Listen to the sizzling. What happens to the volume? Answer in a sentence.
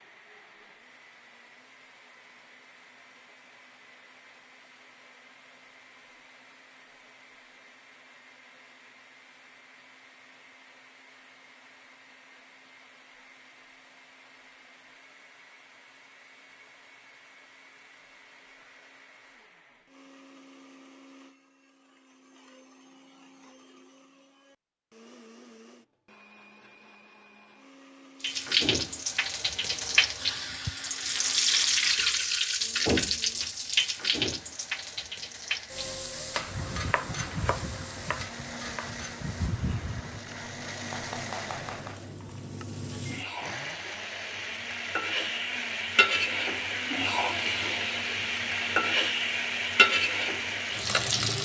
The loudness of the sizzling goes down, then up.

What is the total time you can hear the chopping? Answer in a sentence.
You can hear the chopping for 6 seconds altogether.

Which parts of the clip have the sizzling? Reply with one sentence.
The sizzling can be heard from 28.2 to 51.4 s.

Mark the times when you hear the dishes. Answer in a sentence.
The dishes can't be heard in this clip.